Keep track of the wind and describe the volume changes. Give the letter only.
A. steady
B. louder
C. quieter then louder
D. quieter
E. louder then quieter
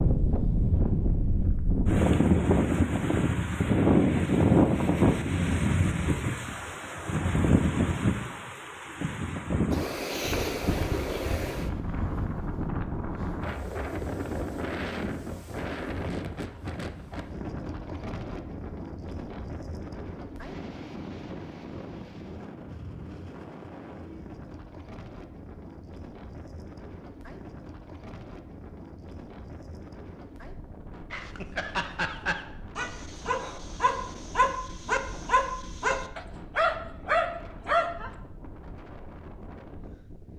D.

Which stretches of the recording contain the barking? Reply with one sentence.
The barking can be heard from 31.1 to 38.1 s.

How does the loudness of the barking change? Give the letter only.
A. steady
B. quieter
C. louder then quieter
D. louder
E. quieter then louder
D.